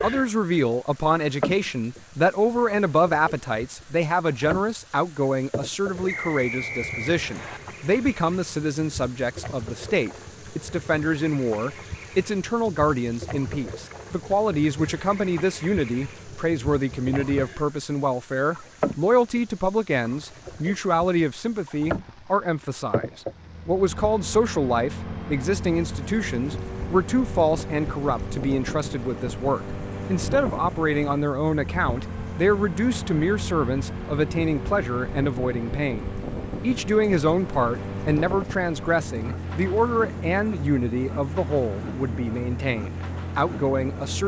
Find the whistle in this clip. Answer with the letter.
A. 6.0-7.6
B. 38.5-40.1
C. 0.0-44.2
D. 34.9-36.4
A.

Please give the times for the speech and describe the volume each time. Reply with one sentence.
You can hear the speech from 0.0 to 44.2 s, at a steady volume.